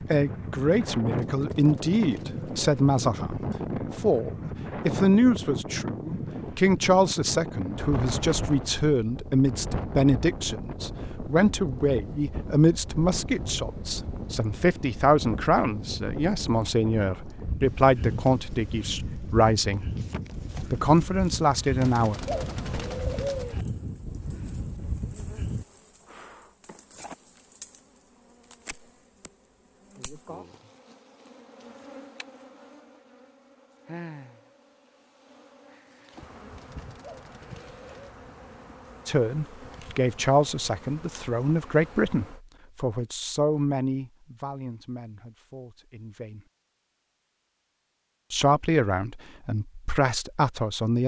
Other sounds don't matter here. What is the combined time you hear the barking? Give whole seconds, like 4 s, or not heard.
not heard.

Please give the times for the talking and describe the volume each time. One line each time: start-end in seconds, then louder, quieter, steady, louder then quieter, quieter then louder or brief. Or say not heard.
0.0-19.9 steady
20.6-22.2 brief
39.0-46.5 quieter
48.3-51.0 brief.